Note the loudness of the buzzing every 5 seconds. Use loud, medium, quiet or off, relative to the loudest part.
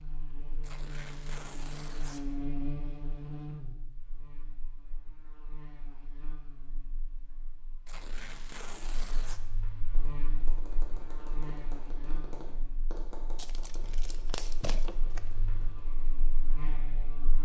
loud, quiet, medium, medium.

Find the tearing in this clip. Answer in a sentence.
You can hear the tearing from 0.6 to 2.2 s, from 7.8 to 9.4 s and from 13.3 to 15.2 s.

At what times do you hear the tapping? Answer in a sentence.
You can hear the tapping from 9.8 to 16.1 s.